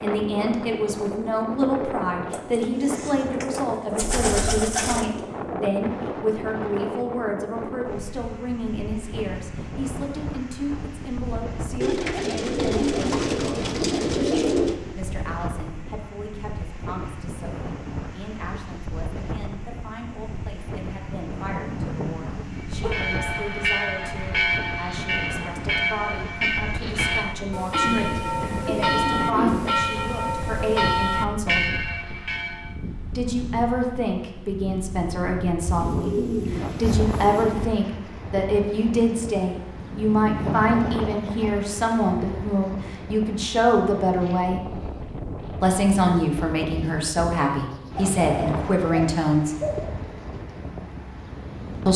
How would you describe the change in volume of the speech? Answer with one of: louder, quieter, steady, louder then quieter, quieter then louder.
quieter then louder.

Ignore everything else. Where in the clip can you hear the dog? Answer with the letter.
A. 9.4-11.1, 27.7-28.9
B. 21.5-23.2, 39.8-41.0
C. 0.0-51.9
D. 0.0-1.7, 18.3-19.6
B.